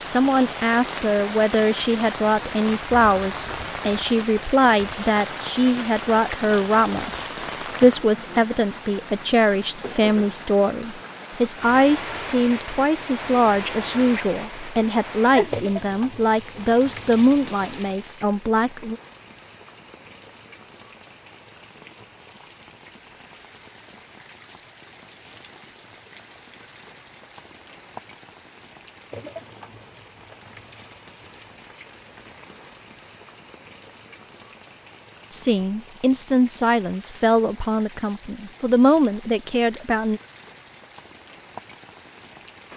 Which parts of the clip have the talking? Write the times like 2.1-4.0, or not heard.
0.0-18.9, 35.3-40.2.